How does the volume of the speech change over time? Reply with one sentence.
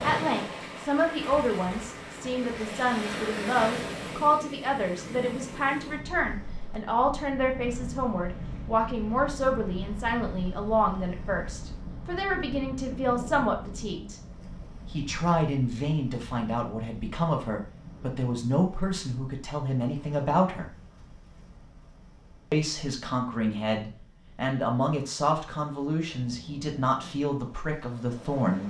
The loudness of the speech stays about the same.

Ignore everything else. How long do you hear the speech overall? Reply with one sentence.
The speech can be heard for 26 seconds in total.